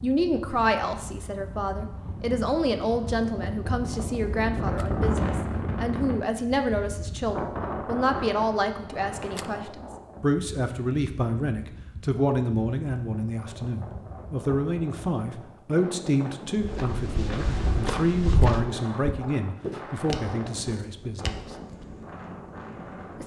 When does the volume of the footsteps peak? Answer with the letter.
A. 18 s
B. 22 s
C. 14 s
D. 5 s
A.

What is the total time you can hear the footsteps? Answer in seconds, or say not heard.
5 s.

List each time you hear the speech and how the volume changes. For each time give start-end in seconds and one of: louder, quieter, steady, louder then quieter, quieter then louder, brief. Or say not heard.
0.0-21.4 steady.